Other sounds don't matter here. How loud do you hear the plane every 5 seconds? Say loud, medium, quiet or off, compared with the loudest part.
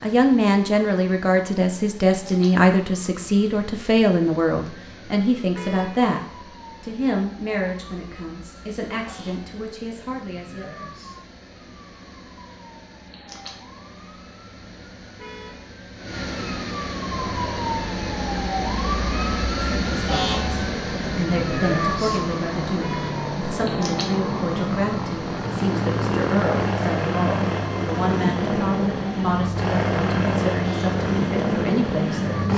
off, off, off, medium, medium, loud, loud.